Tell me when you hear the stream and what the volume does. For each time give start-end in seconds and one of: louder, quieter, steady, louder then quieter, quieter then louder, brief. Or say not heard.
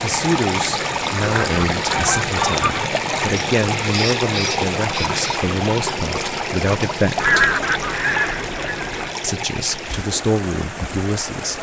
0.0-11.5 quieter.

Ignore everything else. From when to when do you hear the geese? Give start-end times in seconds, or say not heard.
1.2-2.9, 7.2-9.1.